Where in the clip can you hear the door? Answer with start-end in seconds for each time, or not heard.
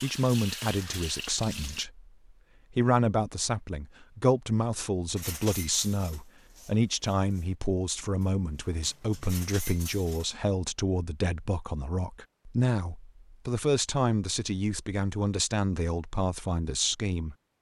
not heard.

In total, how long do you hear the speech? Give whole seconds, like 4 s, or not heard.
17 s.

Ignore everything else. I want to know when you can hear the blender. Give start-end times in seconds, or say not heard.
not heard.